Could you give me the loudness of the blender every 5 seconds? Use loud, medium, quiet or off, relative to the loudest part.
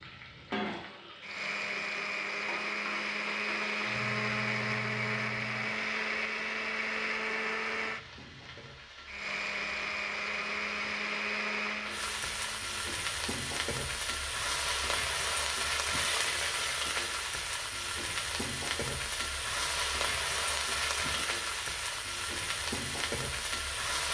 loud, loud, loud, off, off.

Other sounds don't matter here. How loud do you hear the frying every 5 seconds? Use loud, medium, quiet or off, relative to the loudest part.
medium, quiet, loud, loud, loud.